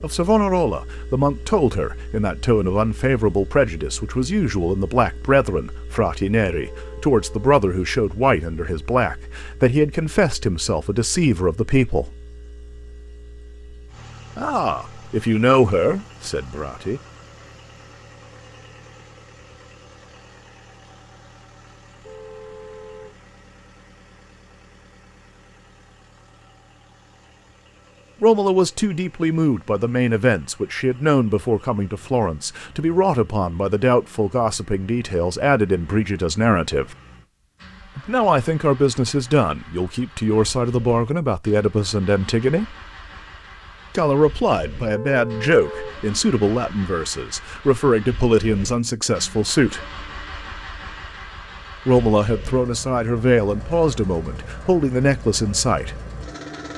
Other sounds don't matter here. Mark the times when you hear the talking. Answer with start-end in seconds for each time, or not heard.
0.0-12.1, 14.3-17.0, 28.2-37.0, 38.0-42.6, 44.0-49.8, 51.9-56.0.